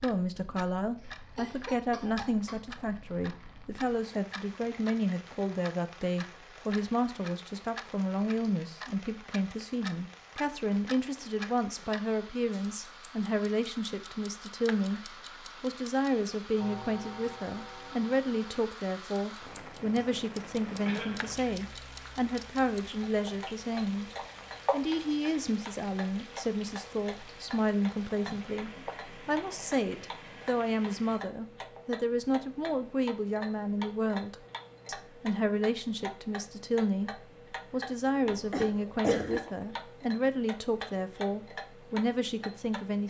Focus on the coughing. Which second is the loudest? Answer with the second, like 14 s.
39 s.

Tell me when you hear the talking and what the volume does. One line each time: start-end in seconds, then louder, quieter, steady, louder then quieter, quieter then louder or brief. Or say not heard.
0.0-43.0 steady.